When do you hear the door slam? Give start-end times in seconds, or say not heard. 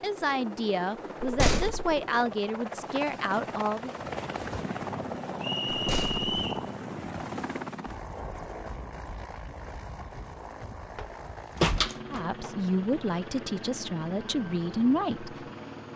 1.2-1.9, 5.7-6.3, 10.9-12.5.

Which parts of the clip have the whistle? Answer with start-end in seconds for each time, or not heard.
5.4-6.7.